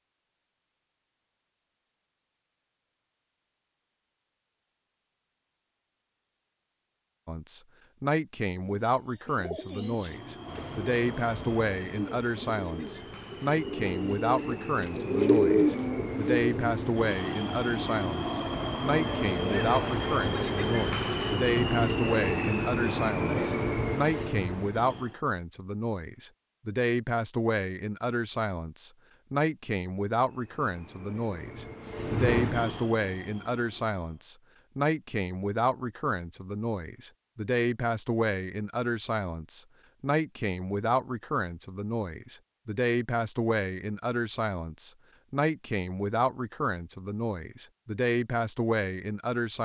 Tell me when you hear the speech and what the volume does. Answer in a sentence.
You can hear the speech from 7.2 to 49.5 s, at a steady volume.